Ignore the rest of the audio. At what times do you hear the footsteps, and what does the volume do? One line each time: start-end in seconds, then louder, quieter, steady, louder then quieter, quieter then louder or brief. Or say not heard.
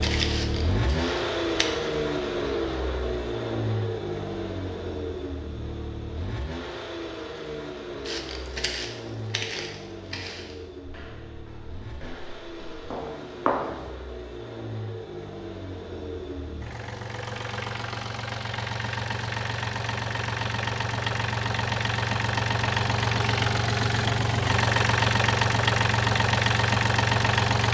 0.0-1.7 brief
8.1-13.9 quieter then louder.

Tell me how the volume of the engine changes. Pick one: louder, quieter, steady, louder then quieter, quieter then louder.
quieter then louder.